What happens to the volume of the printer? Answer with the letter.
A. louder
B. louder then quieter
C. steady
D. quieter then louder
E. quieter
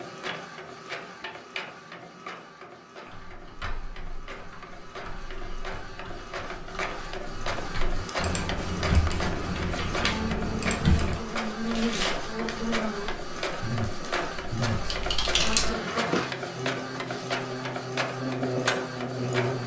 A.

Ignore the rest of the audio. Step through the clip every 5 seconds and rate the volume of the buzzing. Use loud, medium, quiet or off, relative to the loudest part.
off, off, loud, loud.